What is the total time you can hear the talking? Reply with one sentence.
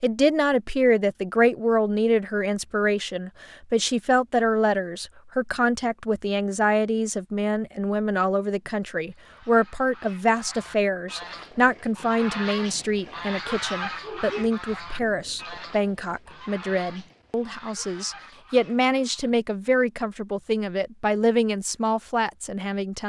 You can hear the talking for 23 seconds altogether.